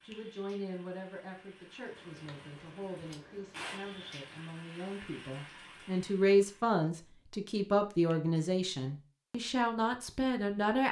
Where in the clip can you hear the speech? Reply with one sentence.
You can hear the speech from 0.0 to 10.8 s.